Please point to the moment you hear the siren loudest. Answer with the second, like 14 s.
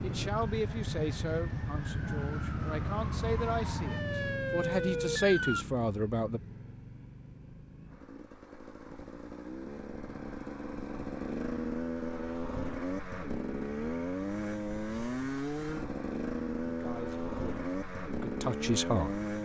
5 s.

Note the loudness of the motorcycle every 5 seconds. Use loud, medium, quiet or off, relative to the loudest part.
loud, medium, loud, loud.